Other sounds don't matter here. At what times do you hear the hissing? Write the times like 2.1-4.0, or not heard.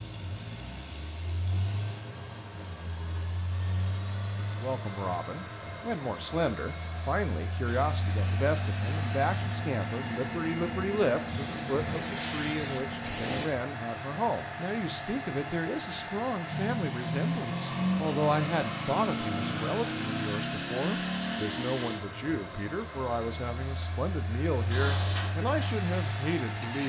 7.7-13.5, 24.5-26.8.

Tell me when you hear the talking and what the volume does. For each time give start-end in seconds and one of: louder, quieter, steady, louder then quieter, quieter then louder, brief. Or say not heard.
4.6-26.8 steady.